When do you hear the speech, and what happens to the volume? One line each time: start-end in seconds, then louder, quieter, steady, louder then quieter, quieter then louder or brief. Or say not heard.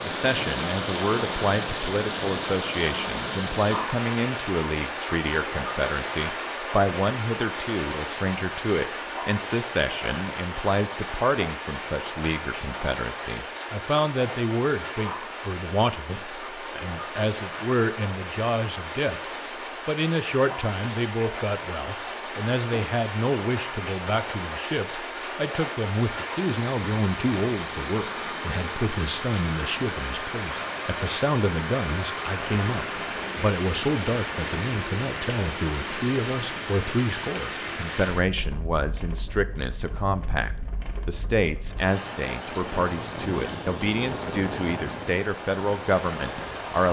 0.0-19.2 steady
19.9-46.8 steady.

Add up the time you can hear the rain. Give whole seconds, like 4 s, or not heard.
47 s.